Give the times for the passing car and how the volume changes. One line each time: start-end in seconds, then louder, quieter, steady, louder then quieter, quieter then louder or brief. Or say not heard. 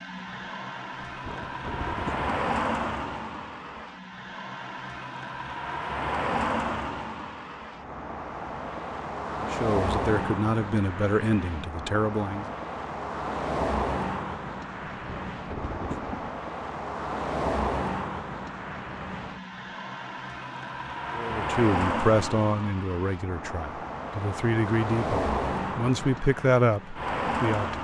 0.0-27.7 steady.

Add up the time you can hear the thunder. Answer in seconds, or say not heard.
3 s.